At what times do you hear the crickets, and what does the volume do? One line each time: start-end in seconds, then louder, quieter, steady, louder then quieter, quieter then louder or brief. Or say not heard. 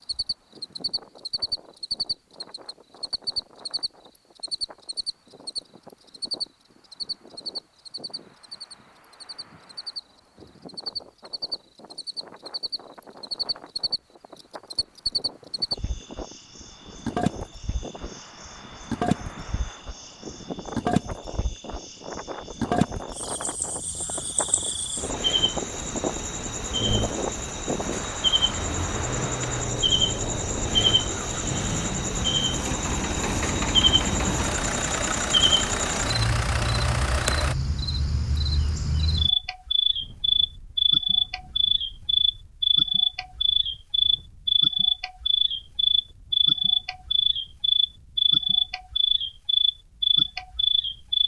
0.0-51.2 louder.